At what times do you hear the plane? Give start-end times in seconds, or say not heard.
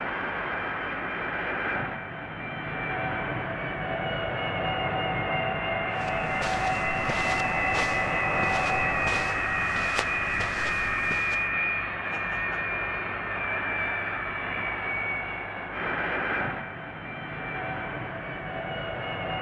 0.0-19.3.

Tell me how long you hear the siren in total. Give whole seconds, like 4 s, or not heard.
not heard.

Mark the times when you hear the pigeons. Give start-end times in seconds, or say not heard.
not heard.